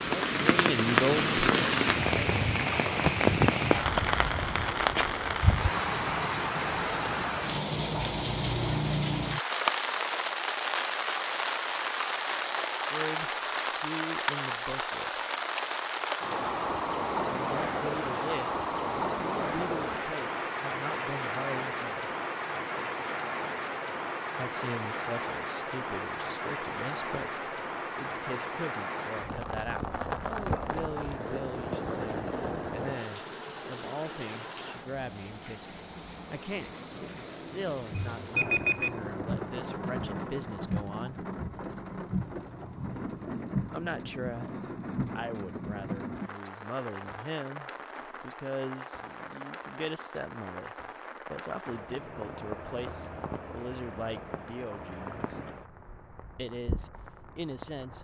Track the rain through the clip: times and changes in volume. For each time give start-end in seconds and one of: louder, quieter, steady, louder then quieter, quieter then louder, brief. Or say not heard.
0.0-58.0 quieter.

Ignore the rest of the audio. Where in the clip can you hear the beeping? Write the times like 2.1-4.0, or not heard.
38.0-38.9.